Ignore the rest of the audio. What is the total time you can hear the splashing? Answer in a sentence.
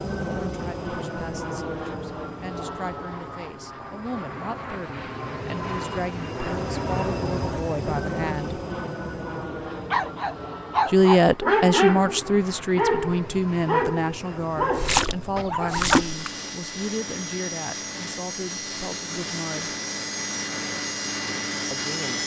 You can hear the splashing for 2 seconds altogether.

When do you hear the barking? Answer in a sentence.
You can hear the barking from 9.9 to 15.9 s.